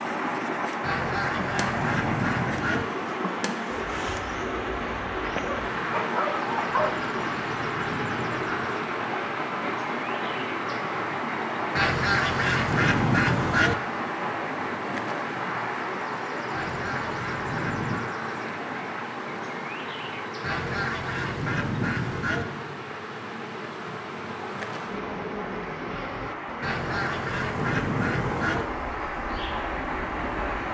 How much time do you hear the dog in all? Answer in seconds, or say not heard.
2 s.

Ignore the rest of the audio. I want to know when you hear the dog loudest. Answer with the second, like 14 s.
7 s.